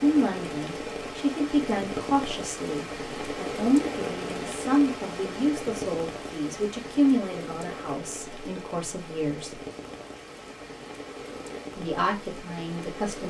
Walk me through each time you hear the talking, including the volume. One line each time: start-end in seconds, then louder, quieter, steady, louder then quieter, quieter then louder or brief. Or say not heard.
0.0-9.6 quieter
11.8-13.2 brief.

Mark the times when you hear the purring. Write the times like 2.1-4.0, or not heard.
not heard.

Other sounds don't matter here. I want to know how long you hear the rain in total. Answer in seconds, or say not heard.
13 s.